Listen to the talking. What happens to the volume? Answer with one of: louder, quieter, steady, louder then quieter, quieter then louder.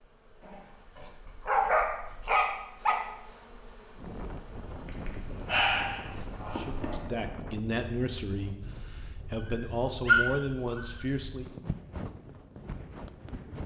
quieter then louder.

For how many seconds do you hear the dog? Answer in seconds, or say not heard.
6 s.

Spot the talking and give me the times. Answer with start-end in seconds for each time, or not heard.
6.5-11.7.